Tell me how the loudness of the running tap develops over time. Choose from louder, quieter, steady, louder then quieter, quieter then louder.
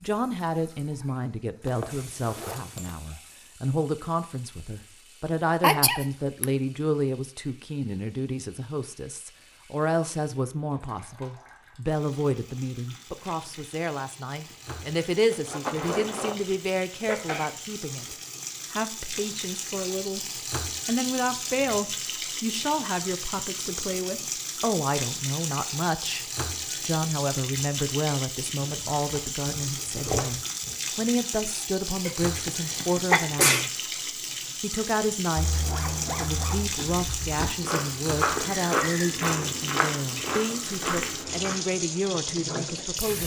louder.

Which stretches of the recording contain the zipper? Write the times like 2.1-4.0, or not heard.
1.6-3.0, 15.3-16.6, 35.4-36.8.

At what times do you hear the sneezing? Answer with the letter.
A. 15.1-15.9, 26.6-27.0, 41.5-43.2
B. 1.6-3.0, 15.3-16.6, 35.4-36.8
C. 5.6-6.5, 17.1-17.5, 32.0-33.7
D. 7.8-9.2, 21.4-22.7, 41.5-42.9
C.